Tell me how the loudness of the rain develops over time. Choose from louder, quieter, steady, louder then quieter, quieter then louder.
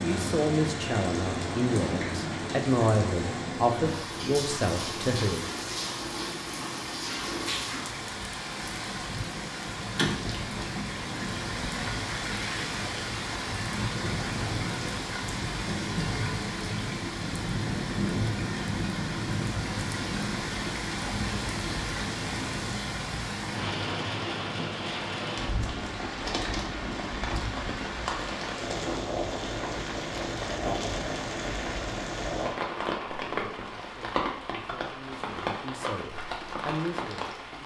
steady.